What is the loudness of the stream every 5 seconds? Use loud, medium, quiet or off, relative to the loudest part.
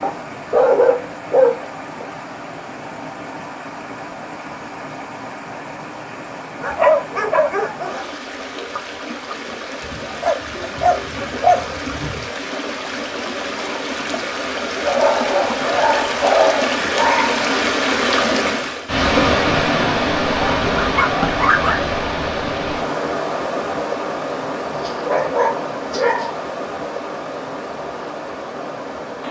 quiet, quiet, medium, loud, loud, medium.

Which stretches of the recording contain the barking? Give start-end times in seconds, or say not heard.
0.0-2.0, 6.6-8.1, 9.8-12.2, 14.8-17.4, 20.6-21.8, 24.7-26.3.